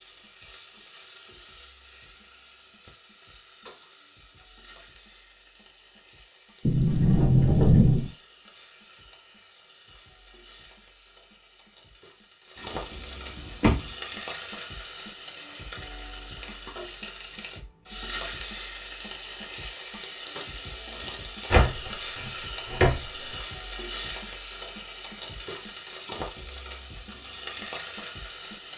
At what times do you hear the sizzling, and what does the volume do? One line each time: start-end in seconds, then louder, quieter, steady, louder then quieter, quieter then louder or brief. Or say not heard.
0.0-28.7 louder.